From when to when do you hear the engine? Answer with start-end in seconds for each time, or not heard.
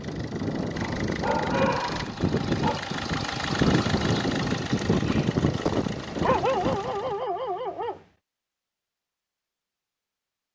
0.0-7.2.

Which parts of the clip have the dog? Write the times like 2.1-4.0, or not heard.
1.1-2.8, 6.2-8.0.